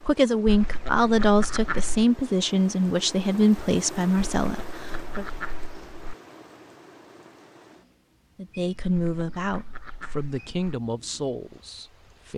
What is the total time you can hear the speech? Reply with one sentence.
The speech can be heard for 9 seconds in total.